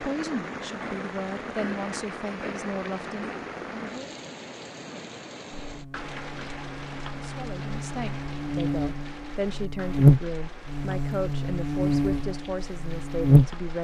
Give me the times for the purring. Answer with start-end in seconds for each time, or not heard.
not heard.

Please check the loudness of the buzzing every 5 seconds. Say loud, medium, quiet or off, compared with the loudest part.
off, quiet, loud.